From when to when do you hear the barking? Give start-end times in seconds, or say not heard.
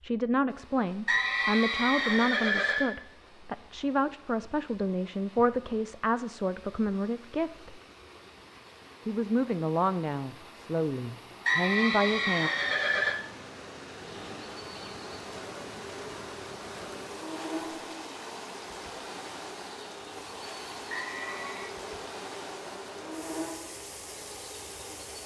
not heard.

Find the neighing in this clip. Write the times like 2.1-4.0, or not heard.
1.1-3.0, 11.4-13.2, 20.9-21.7.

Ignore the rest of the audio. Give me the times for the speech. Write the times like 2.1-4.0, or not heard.
0.0-7.8, 9.1-12.5.